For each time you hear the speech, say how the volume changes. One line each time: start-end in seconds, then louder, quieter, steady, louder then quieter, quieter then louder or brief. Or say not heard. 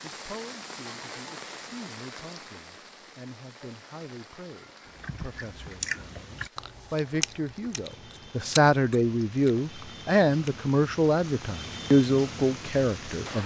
0.0-13.4 louder.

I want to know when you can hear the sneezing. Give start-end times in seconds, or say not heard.
not heard.